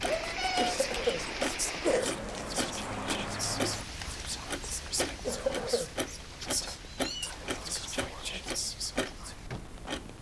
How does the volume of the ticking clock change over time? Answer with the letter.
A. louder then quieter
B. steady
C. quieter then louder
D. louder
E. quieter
B.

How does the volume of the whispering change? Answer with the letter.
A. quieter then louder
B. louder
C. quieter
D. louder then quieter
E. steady
E.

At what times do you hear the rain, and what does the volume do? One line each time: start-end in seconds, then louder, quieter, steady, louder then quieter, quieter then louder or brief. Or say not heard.
0.0-10.1 quieter.